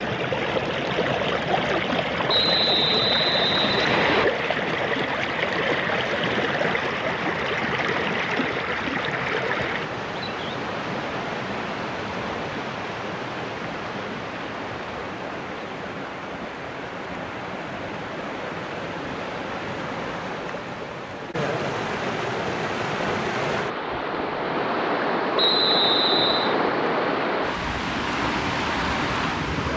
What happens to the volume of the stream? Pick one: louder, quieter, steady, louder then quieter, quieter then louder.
quieter then louder.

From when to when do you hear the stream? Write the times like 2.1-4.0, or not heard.
0.0-29.7.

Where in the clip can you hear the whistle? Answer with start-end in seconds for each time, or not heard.
2.2-4.2, 25.4-26.6.